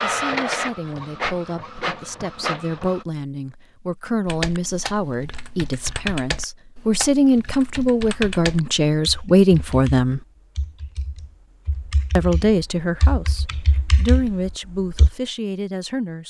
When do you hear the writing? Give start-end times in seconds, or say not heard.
not heard.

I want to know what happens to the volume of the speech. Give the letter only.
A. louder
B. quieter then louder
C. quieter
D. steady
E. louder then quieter
E.